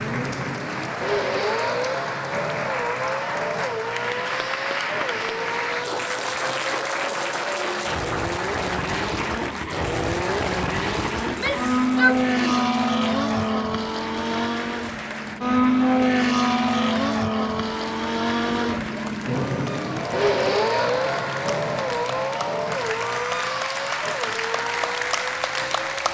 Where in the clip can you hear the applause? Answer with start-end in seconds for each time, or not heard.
0.0-26.0.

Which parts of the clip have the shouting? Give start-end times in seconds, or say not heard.
11.2-12.7.